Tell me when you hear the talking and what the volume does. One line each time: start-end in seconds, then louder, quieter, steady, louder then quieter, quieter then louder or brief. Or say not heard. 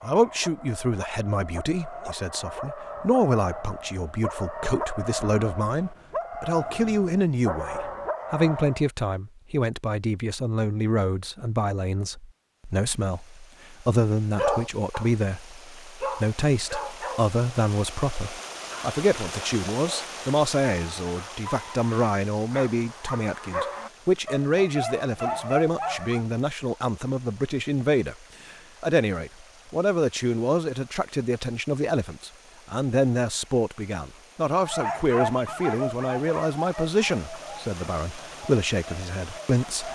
0.0-39.9 steady.